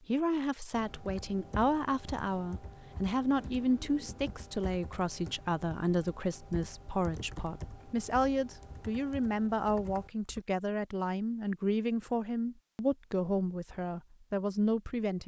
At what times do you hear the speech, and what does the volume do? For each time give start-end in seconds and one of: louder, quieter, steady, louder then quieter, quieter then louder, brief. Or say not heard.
0.1-15.2 steady.